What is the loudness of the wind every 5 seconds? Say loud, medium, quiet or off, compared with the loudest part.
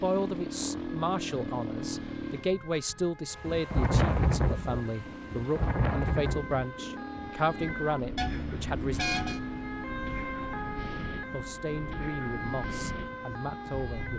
loud, medium, quiet.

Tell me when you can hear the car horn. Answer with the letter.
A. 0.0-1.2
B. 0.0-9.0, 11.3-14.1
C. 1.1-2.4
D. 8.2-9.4
D.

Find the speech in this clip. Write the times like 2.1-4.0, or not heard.
0.0-9.0, 11.3-14.1.